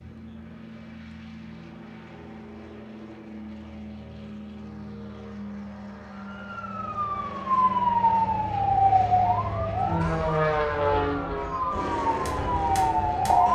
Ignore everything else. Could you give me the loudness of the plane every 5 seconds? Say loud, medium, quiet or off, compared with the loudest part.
quiet, medium, loud.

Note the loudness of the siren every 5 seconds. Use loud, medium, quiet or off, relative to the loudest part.
off, loud, loud.